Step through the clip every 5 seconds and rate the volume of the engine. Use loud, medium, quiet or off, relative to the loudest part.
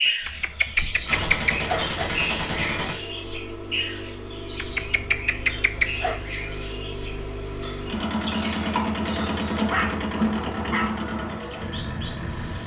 medium, loud, loud.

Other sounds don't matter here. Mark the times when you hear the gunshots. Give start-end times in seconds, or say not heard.
1.1-3.0.